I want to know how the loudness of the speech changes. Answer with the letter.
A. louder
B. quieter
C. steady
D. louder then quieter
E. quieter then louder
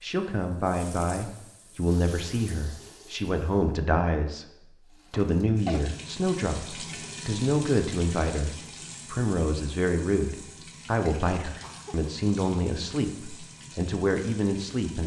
C.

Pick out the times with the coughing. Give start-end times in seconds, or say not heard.
5.1-5.8, 11.4-12.1.